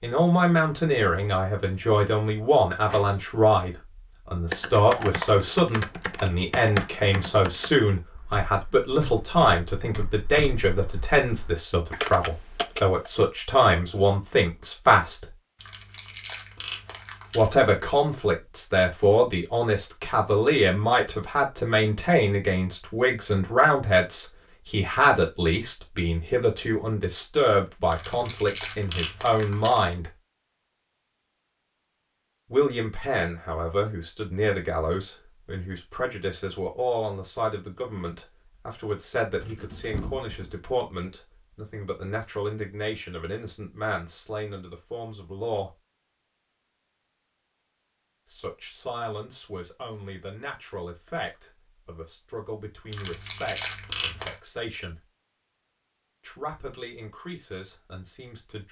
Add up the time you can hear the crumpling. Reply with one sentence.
You can hear the crumpling for 5 seconds altogether.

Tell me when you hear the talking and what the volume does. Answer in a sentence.
The talking can be heard from 0.0 to 15.3 s, at a steady volume; from 17.3 to 30.1 s, at a steady volume; from 32.5 to 45.8 s, getting quieter; from 48.2 to 55.0 s, at a steady volume; and briefly from 56.2 to 58.6 s.